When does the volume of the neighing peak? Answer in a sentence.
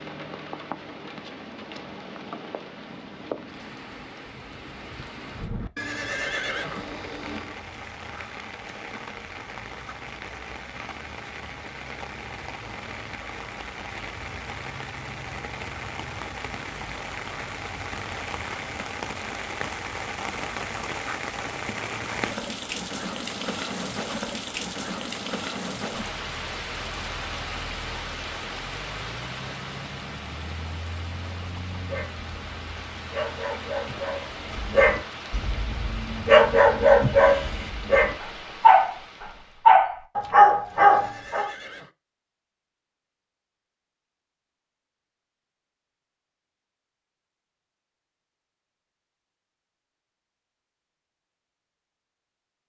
The loudest moment of the neighing is at 6 seconds.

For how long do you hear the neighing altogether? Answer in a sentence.
The neighing can be heard for 3 seconds in total.